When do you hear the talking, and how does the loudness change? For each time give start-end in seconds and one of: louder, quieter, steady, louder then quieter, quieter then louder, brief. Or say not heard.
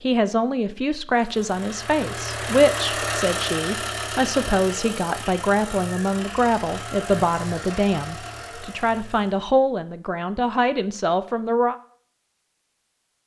0.0-11.8 steady.